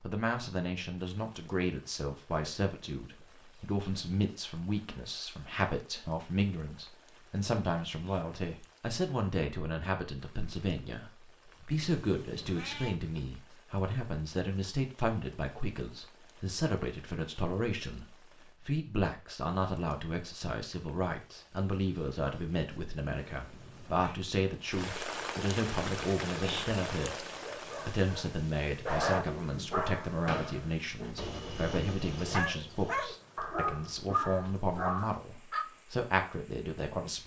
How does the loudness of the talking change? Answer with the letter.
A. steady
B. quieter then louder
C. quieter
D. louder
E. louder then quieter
A.